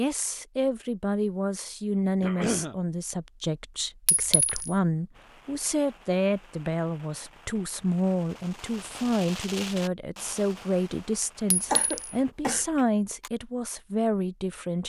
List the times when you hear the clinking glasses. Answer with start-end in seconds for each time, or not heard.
4.0-4.8, 11.5-12.2.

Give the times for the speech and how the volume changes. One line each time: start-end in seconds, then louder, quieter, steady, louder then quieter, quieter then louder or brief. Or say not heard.
0.0-14.8 steady.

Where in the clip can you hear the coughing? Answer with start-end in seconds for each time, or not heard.
2.2-2.8, 11.7-13.3.